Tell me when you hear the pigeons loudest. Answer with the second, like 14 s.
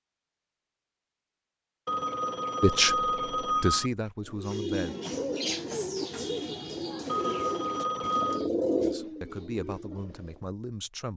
9 s.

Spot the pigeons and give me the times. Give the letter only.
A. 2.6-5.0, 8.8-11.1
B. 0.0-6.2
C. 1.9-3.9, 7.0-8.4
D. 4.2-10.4
D.